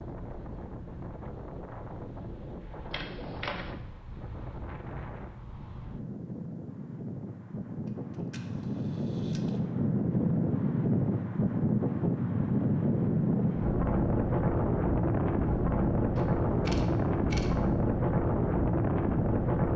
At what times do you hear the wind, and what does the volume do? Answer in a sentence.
You can hear the wind from 0.0 to 19.7 s, getting louder.